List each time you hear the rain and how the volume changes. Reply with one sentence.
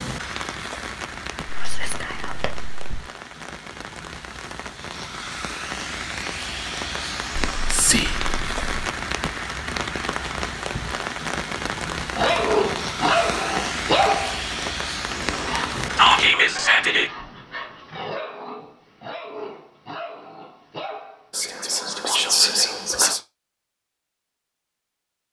You can hear the rain from 0.0 to 16.4 s, getting louder.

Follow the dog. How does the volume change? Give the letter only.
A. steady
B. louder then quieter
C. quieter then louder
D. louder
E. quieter
E.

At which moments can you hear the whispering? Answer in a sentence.
The whispering can be heard from 1.4 to 2.8 s, from 7.5 to 8.8 s, from 15.9 to 17.1 s and from 21.4 to 23.2 s.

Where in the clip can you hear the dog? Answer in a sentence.
You can hear the dog from 11.8 to 21.5 s.